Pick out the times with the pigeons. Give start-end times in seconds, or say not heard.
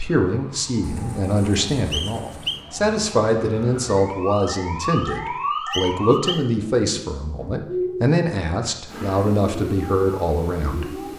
0.8-2.6, 6.5-8.2.